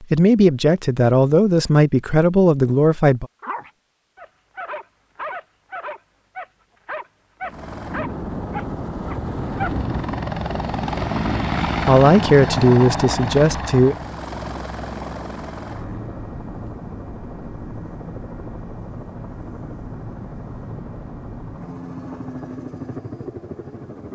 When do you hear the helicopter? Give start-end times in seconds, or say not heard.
7.4-24.1.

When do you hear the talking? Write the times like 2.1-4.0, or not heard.
0.0-3.2, 11.8-13.9.